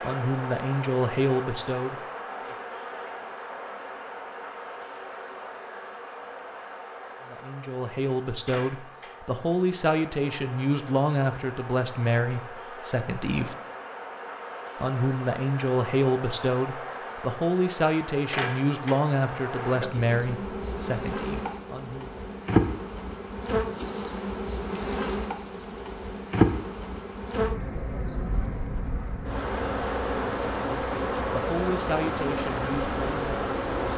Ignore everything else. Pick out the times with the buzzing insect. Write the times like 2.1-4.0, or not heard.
0.0-33.9.